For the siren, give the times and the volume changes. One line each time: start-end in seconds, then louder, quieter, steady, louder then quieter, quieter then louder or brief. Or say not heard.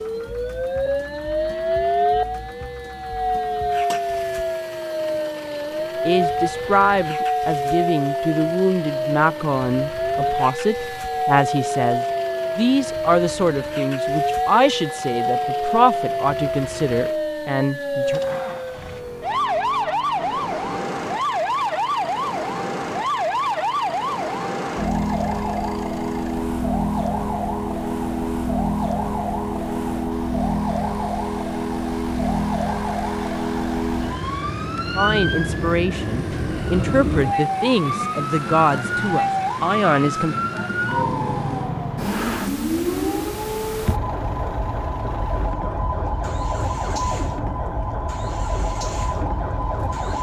0.0-50.1 steady.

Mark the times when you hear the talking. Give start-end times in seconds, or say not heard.
6.0-18.2, 35.0-40.4.